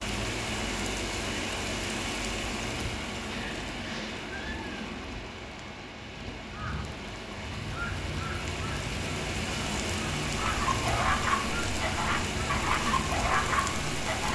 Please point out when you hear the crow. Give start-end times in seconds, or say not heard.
6.5-14.1.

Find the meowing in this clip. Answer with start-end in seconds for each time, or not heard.
3.3-5.0.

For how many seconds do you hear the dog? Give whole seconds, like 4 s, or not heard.
4 s.